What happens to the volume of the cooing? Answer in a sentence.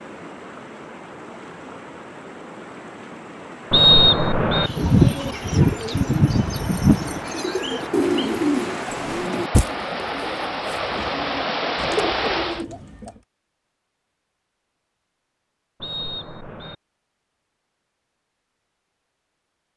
The volume of the cooing goes down, then up.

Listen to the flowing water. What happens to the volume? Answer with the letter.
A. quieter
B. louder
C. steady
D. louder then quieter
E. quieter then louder
B.